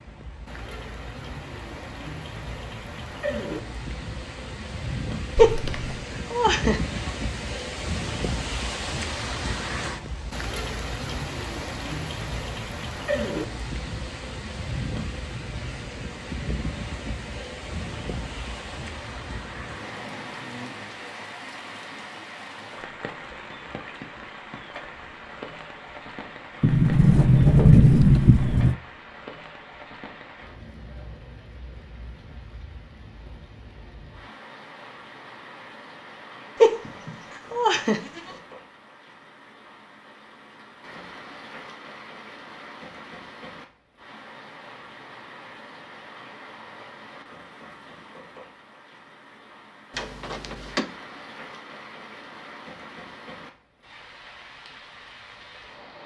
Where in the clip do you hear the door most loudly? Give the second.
28 s.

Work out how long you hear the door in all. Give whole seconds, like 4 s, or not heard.
4 s.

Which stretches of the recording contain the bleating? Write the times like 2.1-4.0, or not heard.
5.3-7.0, 36.6-38.2.